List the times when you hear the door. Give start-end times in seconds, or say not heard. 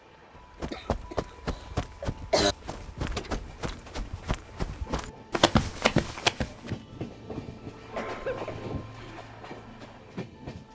3.0-3.9.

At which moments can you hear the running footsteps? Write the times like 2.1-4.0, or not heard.
0.3-6.7.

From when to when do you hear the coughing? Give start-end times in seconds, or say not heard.
0.7-1.1, 2.0-2.5, 7.9-8.7.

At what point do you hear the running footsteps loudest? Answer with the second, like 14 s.
6 s.